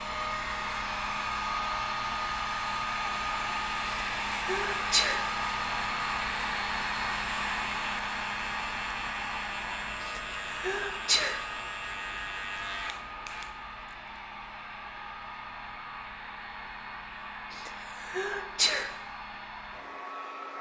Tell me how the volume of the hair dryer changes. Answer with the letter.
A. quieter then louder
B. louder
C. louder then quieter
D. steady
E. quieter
E.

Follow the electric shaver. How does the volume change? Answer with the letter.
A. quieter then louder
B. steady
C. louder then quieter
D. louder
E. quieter
B.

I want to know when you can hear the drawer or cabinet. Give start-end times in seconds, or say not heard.
not heard.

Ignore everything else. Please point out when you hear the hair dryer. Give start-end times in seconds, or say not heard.
0.0-20.5.